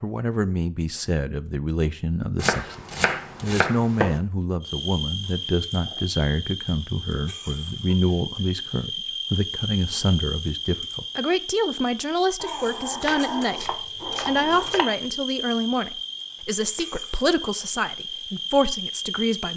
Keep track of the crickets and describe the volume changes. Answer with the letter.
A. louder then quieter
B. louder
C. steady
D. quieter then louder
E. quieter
C.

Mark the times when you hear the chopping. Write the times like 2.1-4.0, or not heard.
2.4-4.2, 13.1-14.8.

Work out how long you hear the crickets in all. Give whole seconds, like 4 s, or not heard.
15 s.